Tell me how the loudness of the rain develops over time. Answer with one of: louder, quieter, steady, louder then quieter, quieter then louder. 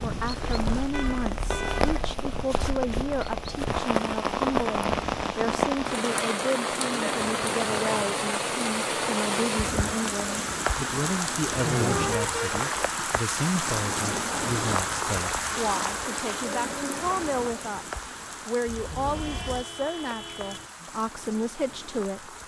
quieter.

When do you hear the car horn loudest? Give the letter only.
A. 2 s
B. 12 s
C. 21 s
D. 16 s
B.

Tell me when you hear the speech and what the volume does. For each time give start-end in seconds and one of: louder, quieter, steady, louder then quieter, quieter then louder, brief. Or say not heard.
0.0-22.4 steady.